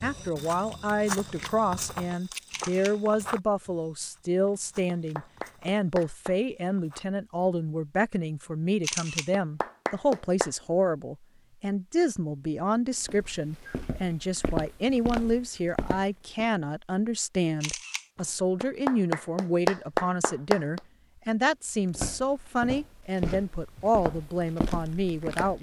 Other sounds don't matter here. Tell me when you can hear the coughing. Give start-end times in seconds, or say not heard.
not heard.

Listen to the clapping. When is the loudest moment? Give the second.
20 s.